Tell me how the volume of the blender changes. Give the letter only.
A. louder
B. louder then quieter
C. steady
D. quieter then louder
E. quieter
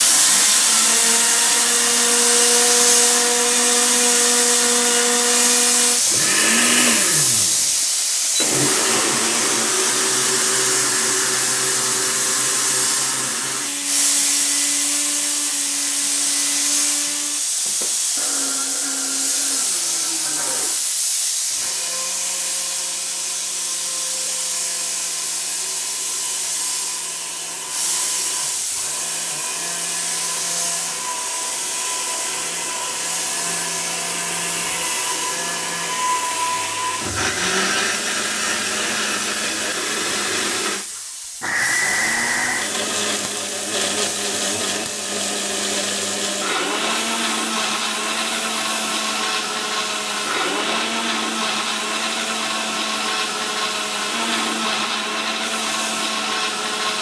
D.